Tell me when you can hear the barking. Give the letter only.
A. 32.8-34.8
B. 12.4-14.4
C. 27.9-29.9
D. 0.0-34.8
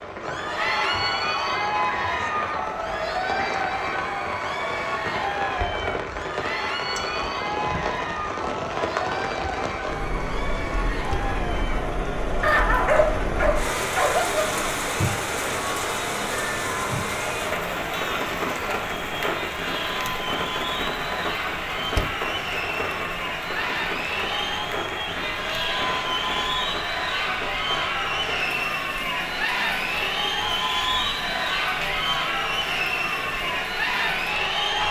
B.